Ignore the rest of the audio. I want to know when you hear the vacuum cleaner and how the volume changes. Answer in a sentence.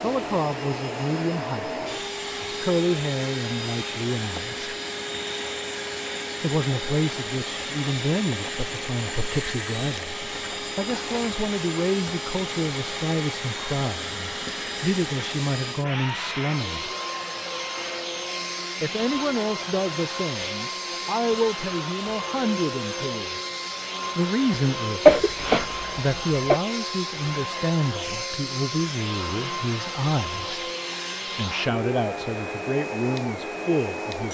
You can hear the vacuum cleaner from 0.0 to 34.2 s, at a steady volume.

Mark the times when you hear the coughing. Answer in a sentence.
The coughing can be heard from 25.1 to 26.6 s.